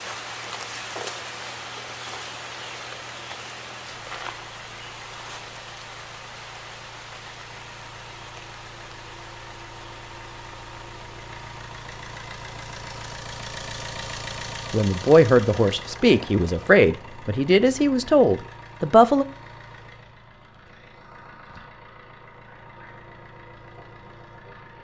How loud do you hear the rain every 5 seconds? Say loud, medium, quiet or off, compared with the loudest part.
loud, medium, medium, off, off.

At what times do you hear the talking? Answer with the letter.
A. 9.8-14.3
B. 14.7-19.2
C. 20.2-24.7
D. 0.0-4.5
B.